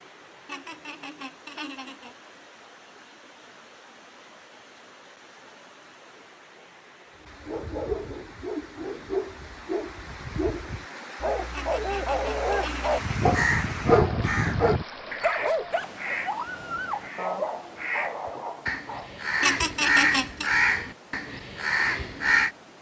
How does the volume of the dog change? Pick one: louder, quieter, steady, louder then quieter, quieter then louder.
louder then quieter.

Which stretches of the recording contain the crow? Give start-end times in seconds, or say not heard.
13.0-22.5.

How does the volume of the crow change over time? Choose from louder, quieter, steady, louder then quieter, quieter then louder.
quieter then louder.